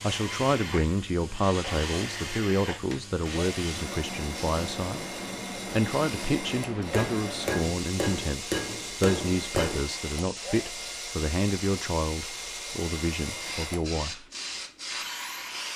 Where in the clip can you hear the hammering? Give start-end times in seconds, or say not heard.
6.9-9.8.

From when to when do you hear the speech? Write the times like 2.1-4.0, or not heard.
0.0-14.2.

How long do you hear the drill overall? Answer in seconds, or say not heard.
16 s.